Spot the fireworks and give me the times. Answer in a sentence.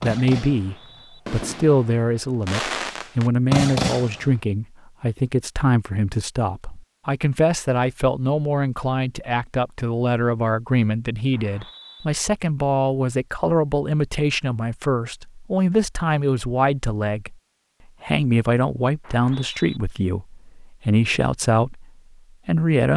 The fireworks can be heard from 0.0 to 4.3 s.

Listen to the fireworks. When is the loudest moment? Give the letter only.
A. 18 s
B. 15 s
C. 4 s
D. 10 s
C.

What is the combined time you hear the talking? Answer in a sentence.
The talking can be heard for 22 seconds in total.